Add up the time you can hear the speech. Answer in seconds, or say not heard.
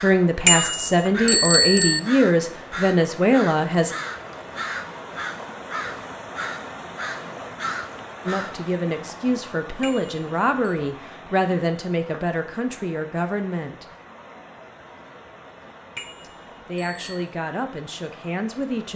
12 s.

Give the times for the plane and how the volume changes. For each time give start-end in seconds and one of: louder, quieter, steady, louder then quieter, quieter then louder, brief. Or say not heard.
not heard.